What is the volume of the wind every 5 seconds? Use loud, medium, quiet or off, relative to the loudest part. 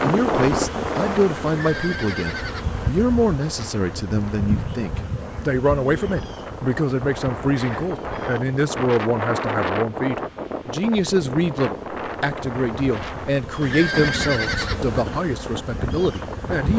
loud, loud, loud, medium.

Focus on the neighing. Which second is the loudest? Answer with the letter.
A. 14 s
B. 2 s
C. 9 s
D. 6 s
A.